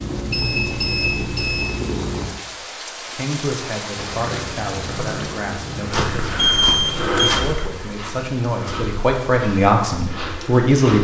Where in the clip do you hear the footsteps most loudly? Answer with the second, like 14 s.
7 s.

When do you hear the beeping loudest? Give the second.
7 s.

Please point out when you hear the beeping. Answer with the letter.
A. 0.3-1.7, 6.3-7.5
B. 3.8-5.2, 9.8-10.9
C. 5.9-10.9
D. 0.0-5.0
A.